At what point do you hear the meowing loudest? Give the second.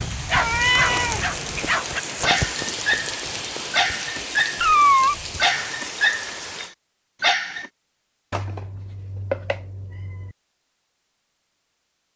5 s.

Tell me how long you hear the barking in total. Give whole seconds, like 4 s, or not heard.
8 s.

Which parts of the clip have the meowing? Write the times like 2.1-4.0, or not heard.
0.3-1.8, 4.6-5.2, 8.3-10.3.